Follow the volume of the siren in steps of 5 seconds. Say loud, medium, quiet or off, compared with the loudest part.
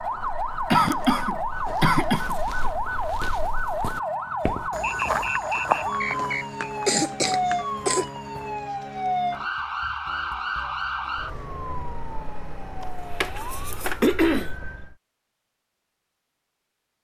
loud, loud, medium, off.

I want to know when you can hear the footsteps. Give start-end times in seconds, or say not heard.
0.0-8.7.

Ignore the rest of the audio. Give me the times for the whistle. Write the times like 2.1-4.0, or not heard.
4.8-6.7.